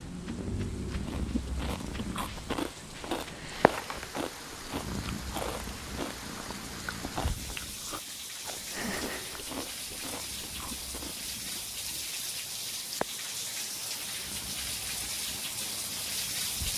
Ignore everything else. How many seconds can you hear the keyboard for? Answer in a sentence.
The keyboard can't be heard in this clip.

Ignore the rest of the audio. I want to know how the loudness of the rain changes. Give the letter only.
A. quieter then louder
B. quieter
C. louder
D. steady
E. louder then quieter
C.